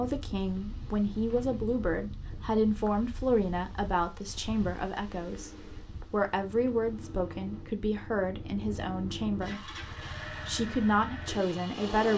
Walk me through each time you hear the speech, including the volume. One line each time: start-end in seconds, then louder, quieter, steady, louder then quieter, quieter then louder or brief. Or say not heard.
0.0-12.1 steady.